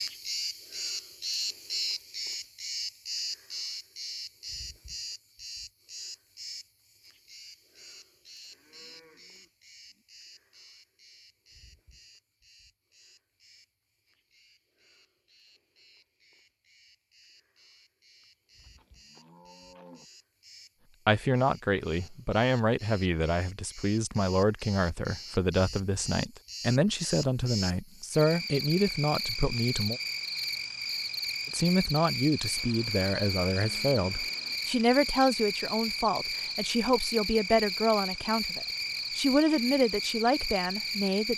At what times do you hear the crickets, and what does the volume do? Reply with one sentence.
You can hear the crickets from 0.0 to 41.3 s, getting quieter then louder.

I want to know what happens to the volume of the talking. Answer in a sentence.
The volume of the talking stays about the same.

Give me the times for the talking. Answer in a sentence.
You can hear the talking from 21.1 to 30.0 s and from 31.5 to 41.3 s.